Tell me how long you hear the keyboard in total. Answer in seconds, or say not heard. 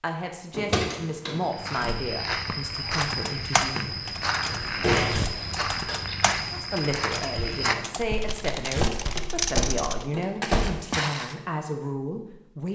7 s.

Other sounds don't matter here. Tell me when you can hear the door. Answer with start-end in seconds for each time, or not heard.
0.6-1.4, 4.5-6.0, 8.7-10.8.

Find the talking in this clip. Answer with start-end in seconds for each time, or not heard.
0.0-4.0, 6.5-12.6.